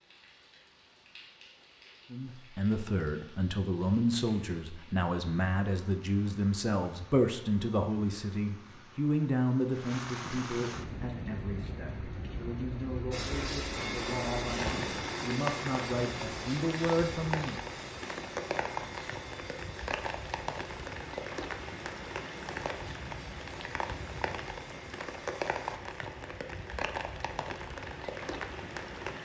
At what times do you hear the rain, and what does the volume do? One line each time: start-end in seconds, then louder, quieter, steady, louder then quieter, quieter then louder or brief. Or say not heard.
0.0-29.2 louder.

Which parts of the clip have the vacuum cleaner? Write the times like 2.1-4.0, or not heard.
13.1-25.8.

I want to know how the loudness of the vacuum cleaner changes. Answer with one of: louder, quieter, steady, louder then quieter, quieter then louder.
quieter.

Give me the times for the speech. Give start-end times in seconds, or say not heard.
2.1-17.6.